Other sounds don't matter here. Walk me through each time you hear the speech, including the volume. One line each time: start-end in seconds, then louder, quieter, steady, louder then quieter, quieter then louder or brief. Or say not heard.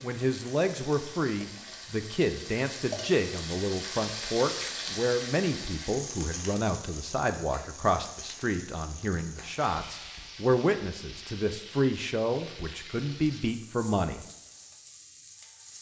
0.0-14.2 steady.